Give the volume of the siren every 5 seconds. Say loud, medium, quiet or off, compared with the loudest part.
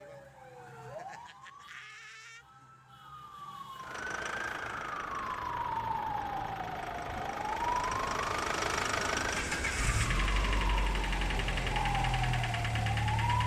medium, loud, loud.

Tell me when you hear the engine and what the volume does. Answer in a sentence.
You can hear the engine from 3.8 to 13.4 s, getting louder.